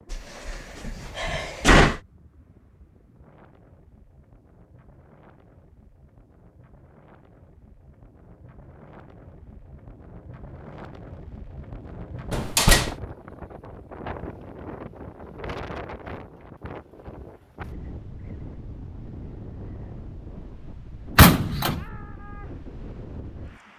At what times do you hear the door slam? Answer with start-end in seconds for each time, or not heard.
0.1-2.0, 12.3-12.9, 21.1-21.9.